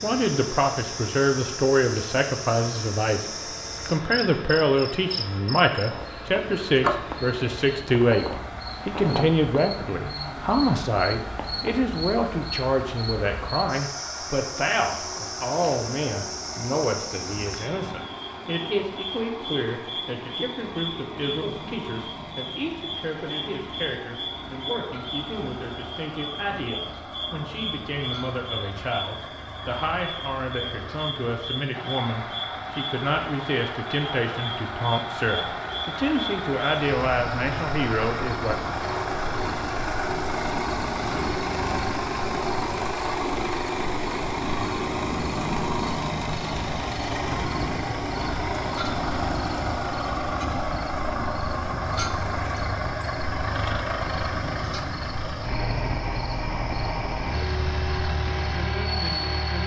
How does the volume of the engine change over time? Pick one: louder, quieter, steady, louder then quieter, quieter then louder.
louder.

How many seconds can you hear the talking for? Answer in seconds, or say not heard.
38 s.